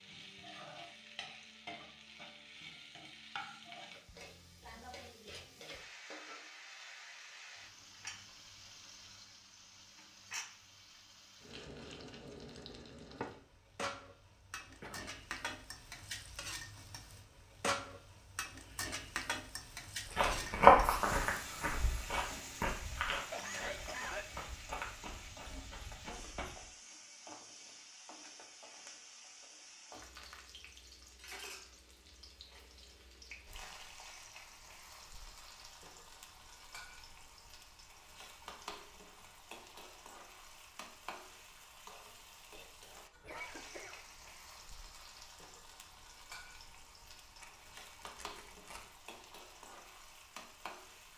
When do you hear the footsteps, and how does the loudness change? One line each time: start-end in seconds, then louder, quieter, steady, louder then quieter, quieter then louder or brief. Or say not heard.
20.1-26.7 quieter.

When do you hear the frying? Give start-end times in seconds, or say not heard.
0.0-51.1.